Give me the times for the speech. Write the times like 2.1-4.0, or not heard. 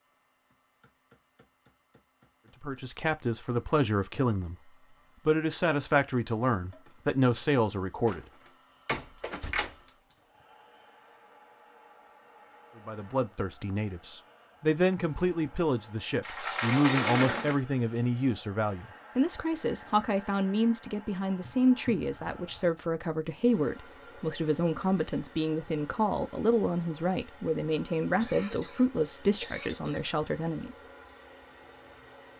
2.6-8.2, 12.8-30.8.